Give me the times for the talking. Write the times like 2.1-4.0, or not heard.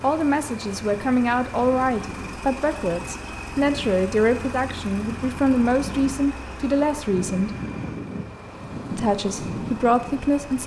0.0-7.5, 8.9-10.6.